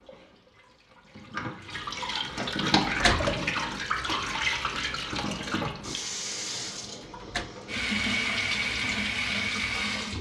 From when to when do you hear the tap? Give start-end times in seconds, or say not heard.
0.0-10.1.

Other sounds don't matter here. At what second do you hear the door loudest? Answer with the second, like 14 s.
3 s.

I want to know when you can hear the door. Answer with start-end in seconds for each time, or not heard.
2.5-3.4, 6.8-7.5.